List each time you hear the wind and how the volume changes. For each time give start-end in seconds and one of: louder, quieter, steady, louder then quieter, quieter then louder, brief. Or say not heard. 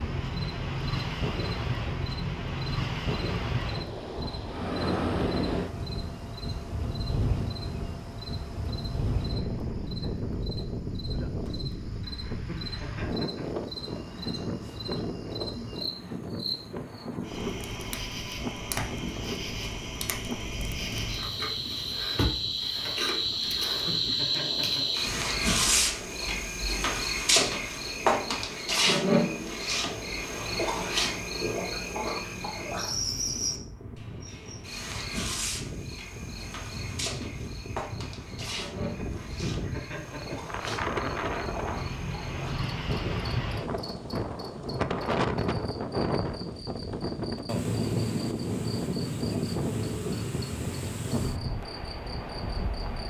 0.0-53.0 quieter then louder.